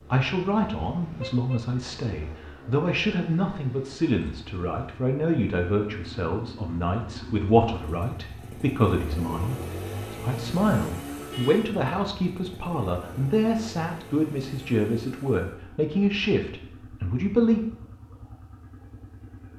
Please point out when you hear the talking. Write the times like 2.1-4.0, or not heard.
0.1-17.6.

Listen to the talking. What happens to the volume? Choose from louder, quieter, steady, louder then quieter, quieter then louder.
steady.